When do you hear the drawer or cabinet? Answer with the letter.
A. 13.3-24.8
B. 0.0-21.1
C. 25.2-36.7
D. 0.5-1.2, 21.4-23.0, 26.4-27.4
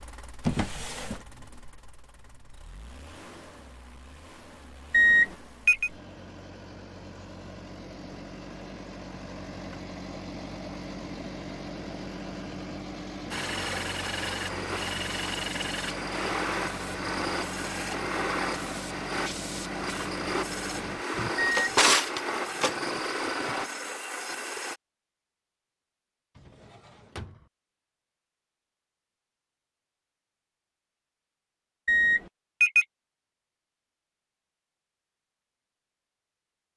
D.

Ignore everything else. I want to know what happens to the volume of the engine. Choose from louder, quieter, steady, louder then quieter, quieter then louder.
louder.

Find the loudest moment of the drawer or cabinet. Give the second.
22 s.